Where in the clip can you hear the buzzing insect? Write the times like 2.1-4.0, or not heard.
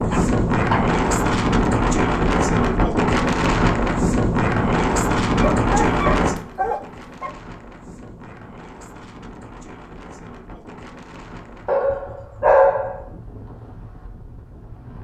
not heard.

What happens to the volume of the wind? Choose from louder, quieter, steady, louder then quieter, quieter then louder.
quieter.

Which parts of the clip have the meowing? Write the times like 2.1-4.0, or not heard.
not heard.